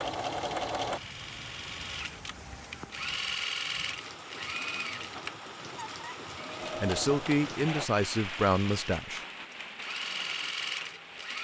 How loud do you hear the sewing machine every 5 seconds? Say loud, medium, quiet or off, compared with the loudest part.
loud, medium, loud.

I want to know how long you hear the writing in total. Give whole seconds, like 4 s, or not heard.
not heard.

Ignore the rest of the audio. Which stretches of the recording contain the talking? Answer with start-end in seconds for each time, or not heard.
6.8-9.2.